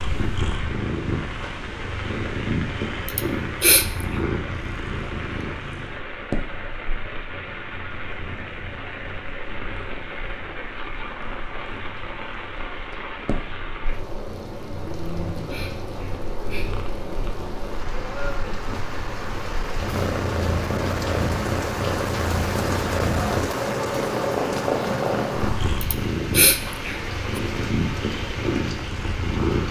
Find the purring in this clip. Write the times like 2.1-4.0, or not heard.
0.0-29.6.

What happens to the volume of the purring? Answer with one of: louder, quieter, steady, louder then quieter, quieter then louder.
quieter then louder.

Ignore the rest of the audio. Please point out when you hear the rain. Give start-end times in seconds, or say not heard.
0.0-29.6.